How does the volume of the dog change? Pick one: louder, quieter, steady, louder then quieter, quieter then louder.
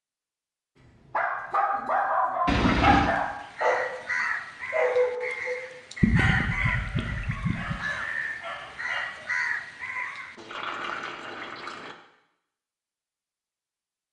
quieter.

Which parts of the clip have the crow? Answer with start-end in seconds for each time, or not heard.
3.0-10.3.